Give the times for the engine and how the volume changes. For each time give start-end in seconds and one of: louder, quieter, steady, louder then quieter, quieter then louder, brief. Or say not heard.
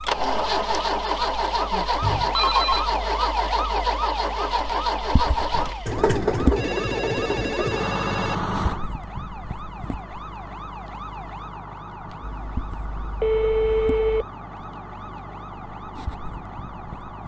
0.0-17.2 quieter.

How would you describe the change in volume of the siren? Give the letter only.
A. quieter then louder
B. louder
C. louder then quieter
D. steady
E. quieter
E.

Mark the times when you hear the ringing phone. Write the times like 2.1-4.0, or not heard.
2.0-2.9, 6.3-8.3, 12.2-14.2.